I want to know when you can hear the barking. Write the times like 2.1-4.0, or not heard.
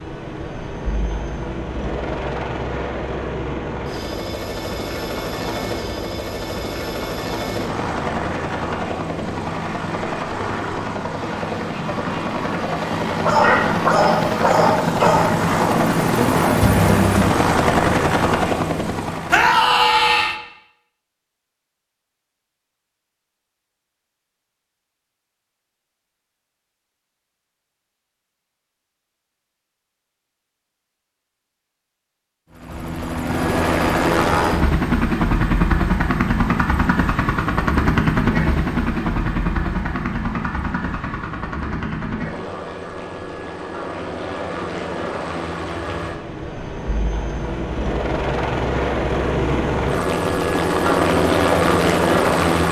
13.2-15.3.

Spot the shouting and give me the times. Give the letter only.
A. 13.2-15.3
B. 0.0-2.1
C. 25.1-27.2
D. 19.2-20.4
D.